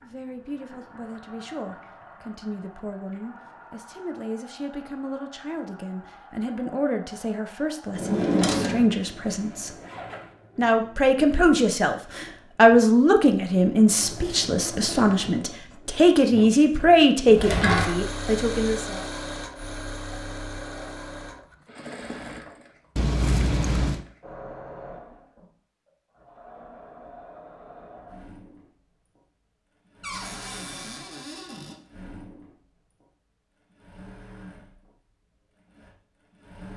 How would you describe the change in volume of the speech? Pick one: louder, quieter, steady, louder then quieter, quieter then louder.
louder.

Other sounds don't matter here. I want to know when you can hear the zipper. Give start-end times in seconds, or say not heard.
9.2-10.3, 22.9-24.1.